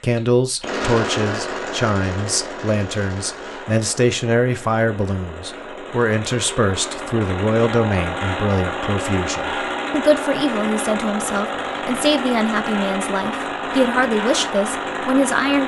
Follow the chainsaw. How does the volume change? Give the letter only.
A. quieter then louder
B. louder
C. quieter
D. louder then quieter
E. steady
A.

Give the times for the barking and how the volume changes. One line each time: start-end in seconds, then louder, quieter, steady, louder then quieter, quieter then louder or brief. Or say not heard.
not heard.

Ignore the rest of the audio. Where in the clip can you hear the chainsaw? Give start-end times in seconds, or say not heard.
0.0-15.6.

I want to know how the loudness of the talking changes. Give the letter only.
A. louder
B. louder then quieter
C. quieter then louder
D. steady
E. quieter
D.